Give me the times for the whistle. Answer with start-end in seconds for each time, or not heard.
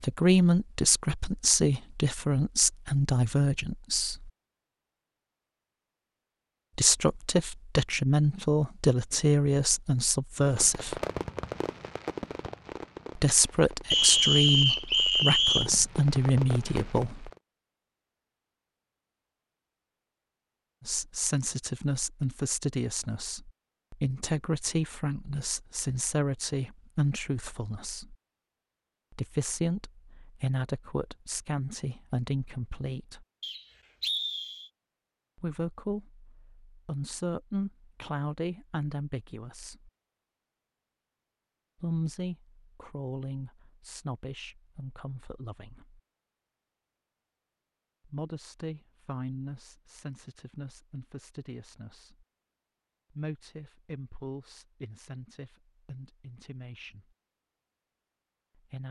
13.9-15.7, 33.4-34.7.